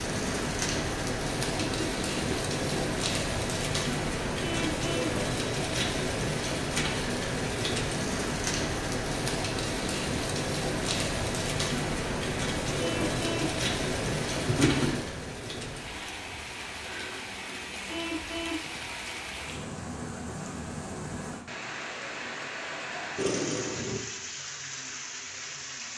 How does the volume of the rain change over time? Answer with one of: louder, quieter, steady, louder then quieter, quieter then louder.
quieter.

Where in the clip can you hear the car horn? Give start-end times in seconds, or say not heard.
4.4-5.2, 12.8-13.6, 17.9-18.7.